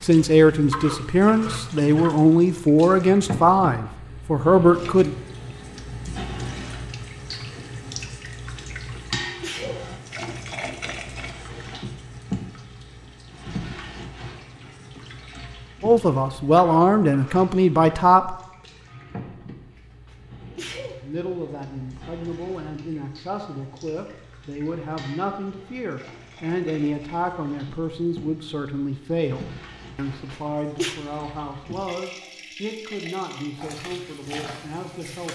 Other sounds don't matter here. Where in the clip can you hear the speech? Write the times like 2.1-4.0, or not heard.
0.0-5.1, 15.8-18.4, 21.0-35.3.